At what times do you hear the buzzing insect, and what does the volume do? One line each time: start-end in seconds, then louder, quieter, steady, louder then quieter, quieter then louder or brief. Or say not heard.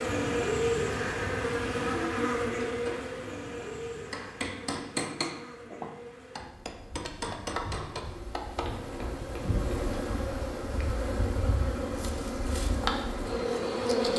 0.0-14.1 quieter then louder.